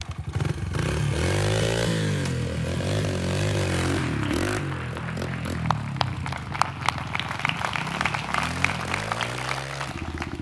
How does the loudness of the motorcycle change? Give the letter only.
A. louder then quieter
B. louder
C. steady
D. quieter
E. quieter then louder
D.